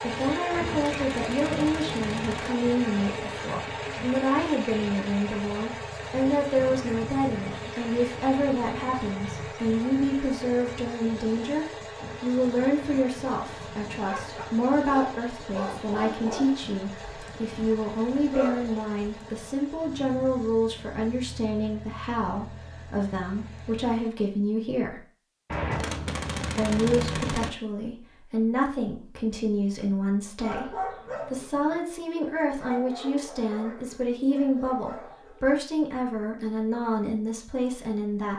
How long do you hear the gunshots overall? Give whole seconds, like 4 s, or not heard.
4 s.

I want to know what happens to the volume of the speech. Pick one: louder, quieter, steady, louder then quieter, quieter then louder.
steady.